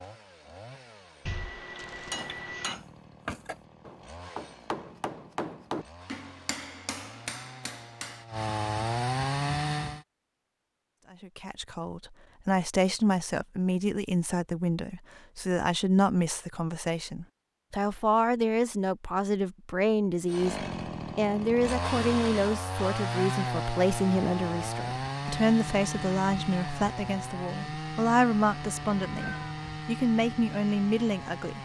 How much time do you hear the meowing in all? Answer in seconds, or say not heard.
3 s.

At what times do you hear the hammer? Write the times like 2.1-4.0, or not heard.
2.1-8.2.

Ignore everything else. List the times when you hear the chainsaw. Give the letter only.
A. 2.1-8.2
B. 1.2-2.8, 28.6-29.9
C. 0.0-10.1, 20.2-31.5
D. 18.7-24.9
C.